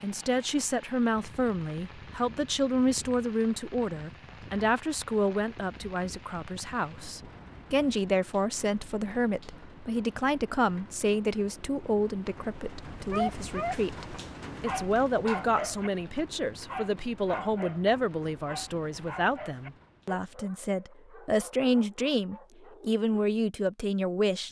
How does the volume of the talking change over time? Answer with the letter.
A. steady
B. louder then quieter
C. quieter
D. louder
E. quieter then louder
A.